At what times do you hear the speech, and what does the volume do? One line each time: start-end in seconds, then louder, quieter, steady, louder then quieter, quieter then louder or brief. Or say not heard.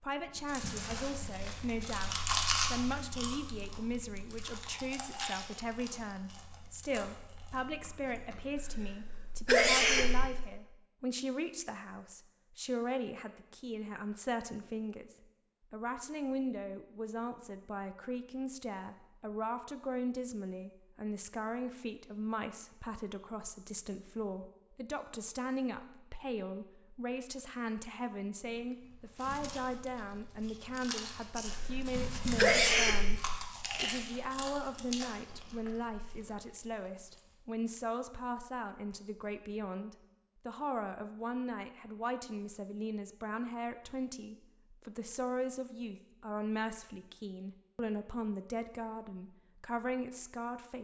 0.0-50.8 steady.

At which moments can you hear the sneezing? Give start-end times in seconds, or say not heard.
8.6-10.2, 31.5-33.1.